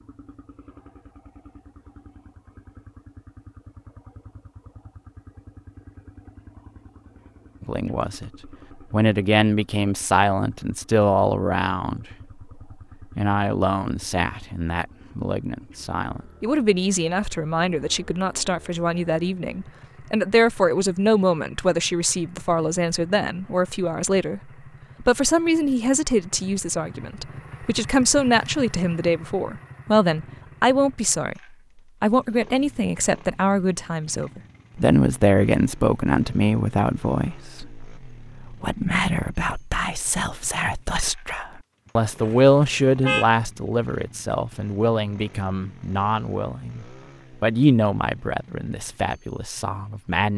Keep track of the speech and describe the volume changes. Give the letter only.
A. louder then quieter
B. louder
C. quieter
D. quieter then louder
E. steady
E.